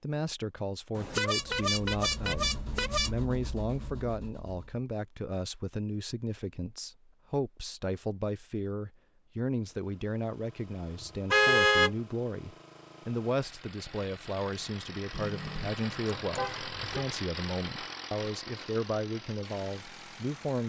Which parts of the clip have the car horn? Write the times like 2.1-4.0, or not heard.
0.9-3.1, 11.3-11.9, 15.1-17.1.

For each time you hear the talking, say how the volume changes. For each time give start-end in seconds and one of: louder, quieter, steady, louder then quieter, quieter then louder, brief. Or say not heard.
0.0-20.6 steady.